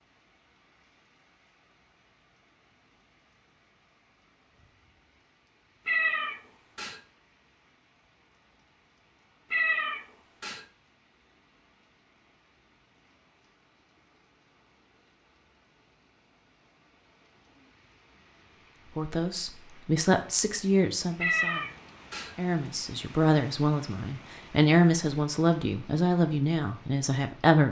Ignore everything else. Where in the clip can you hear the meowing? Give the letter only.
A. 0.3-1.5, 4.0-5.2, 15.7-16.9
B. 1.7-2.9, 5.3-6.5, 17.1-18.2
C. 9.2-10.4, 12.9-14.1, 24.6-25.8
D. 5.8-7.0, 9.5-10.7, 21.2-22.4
D.